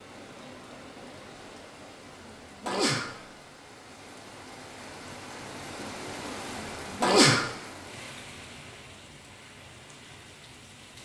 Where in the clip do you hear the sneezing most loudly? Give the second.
7 s.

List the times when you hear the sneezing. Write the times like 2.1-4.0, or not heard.
2.6-3.2, 7.0-7.5.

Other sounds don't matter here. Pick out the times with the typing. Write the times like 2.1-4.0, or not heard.
not heard.